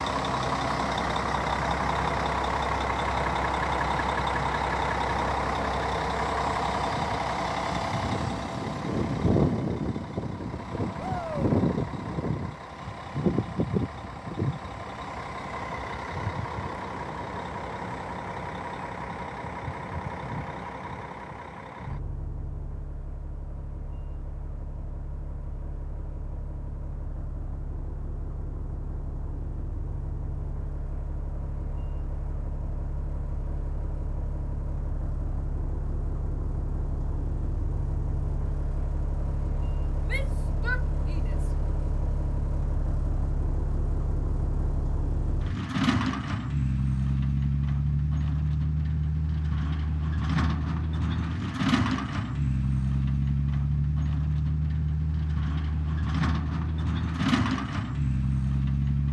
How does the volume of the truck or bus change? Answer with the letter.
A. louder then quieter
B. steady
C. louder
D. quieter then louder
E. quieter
D.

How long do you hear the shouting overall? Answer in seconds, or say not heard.
2 s.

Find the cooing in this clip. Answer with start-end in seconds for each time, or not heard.
not heard.